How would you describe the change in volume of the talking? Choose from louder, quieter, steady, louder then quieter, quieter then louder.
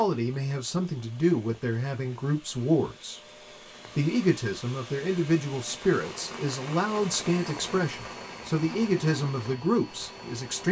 steady.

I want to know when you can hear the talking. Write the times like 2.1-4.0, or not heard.
0.0-3.2, 4.0-10.6.